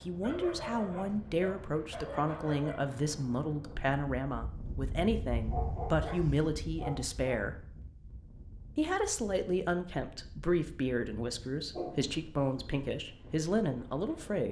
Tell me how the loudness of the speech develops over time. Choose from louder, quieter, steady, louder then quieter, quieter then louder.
steady.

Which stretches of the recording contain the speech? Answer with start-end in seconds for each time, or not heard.
0.0-7.5, 8.8-14.4.